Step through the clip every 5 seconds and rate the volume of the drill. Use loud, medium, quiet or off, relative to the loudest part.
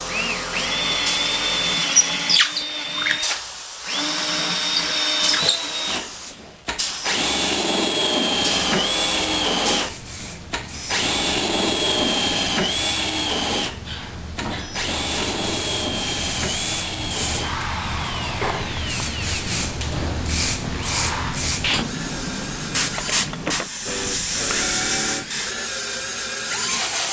loud, loud, loud, medium, medium, medium.